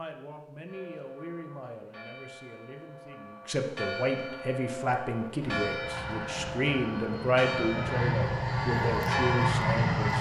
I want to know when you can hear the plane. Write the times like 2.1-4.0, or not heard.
5.4-10.1.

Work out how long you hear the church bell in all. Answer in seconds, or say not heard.
9 s.